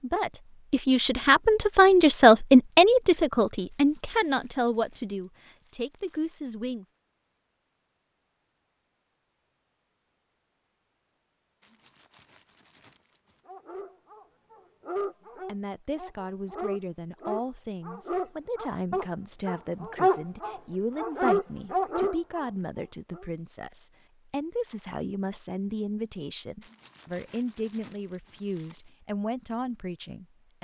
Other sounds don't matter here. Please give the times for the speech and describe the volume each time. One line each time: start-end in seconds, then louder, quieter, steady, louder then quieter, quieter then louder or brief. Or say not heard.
0.0-6.8 louder then quieter
15.4-30.5 steady.